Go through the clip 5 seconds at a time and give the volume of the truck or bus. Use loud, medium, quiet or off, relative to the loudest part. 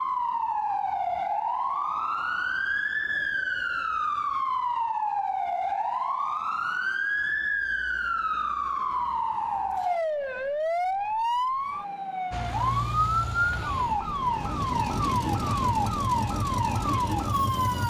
off, off, loud, loud.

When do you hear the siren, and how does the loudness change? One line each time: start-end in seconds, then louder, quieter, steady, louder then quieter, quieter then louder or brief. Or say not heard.
0.0-17.8 steady.